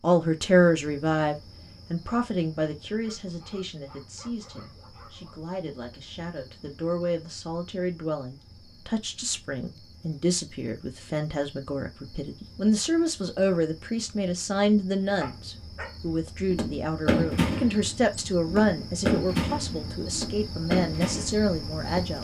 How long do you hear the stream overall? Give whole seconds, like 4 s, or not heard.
not heard.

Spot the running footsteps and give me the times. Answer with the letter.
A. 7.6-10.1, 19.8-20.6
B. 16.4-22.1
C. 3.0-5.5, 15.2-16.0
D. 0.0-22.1
B.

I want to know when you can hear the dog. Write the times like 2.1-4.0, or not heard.
3.0-5.5, 15.2-16.0.